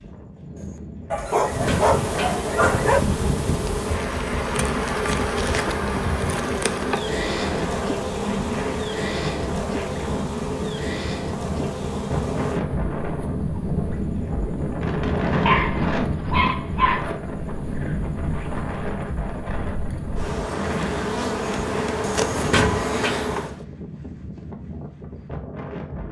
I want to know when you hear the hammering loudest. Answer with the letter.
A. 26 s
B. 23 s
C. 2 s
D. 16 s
B.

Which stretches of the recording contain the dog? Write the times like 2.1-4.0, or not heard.
1.1-3.0, 15.4-17.1.